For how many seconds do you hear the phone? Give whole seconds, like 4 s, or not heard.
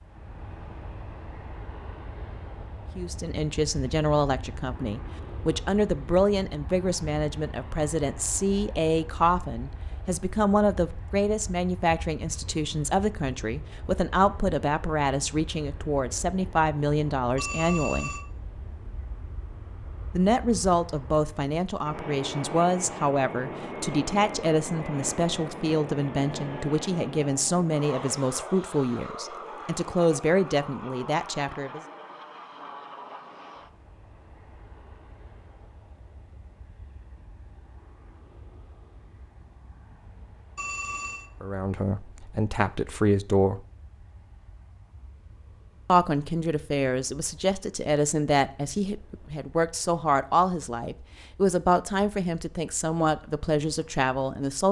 2 s.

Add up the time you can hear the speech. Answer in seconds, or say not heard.
38 s.